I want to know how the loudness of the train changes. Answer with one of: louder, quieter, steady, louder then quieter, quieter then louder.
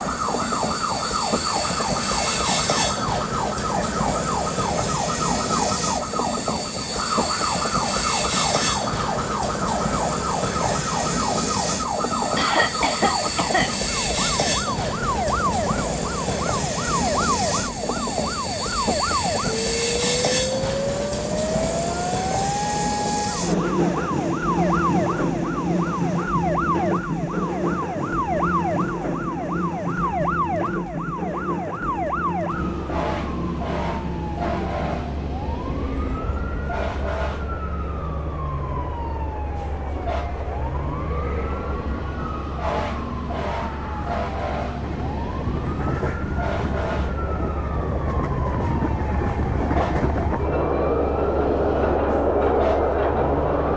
quieter then louder.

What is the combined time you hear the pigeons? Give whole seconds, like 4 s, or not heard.
not heard.